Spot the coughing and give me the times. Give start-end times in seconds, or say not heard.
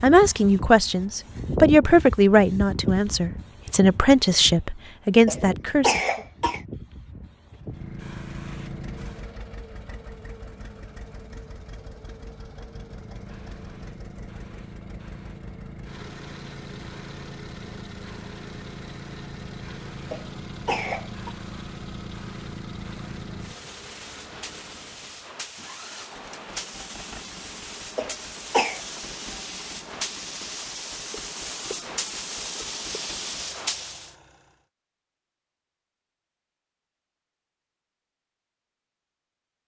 5.2-6.6, 20.1-21.3, 27.9-28.8.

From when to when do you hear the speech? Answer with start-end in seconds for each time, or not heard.
0.0-6.0.